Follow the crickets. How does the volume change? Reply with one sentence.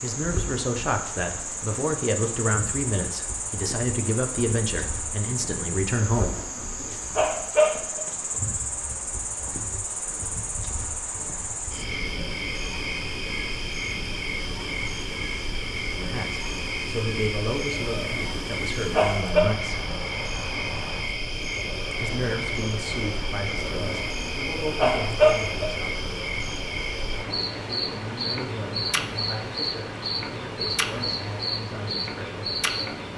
The volume of the crickets stays about the same.